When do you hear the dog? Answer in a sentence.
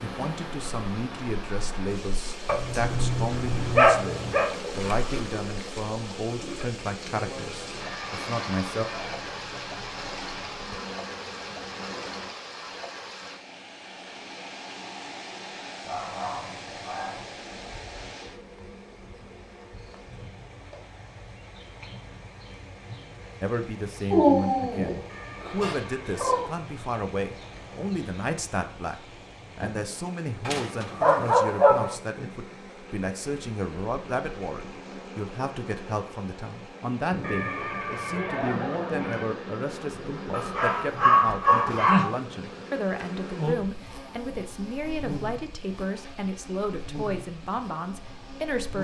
The dog can be heard from 2.5 to 4.5 s, from 15.8 to 17.2 s, from 24.1 to 26.5 s, from 30.4 to 31.9 s and from 40.3 to 42.1 s.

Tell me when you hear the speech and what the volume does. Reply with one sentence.
The speech can be heard from 0.0 to 8.8 s, at a steady volume; and from 23.4 to 48.7 s, at a steady volume.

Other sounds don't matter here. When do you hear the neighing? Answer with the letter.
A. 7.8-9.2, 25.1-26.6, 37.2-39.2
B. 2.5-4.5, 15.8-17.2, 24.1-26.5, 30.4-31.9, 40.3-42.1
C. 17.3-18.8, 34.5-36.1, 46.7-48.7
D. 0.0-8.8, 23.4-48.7
A.